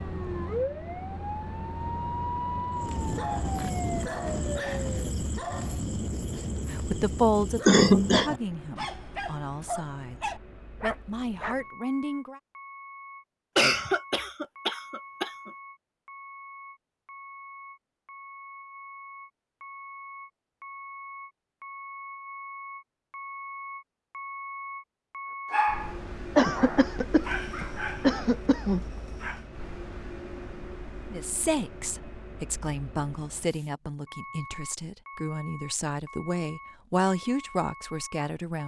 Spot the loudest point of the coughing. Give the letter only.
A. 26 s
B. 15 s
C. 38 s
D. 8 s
D.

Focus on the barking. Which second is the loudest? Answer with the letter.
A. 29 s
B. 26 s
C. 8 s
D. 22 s
B.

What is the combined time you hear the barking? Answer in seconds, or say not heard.
13 s.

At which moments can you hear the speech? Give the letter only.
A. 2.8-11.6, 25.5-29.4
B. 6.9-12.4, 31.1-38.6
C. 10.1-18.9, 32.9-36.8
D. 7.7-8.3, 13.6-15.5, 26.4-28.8
B.